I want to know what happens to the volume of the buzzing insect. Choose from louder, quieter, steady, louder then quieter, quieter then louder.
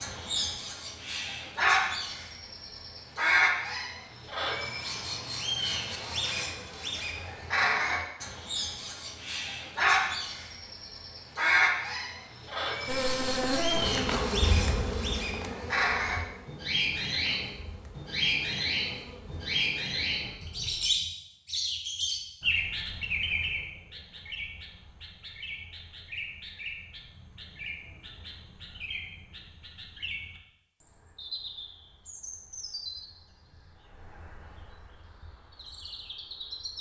quieter.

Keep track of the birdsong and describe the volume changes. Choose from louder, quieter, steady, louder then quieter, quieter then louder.
quieter.